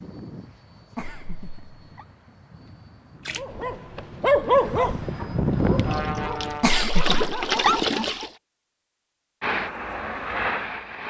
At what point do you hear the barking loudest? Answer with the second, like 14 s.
4 s.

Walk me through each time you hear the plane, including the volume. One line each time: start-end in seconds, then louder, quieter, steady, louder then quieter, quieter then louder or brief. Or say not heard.
0.0-6.8 louder
9.4-11.0 brief.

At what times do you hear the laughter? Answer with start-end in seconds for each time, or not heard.
0.9-2.0, 6.6-7.8.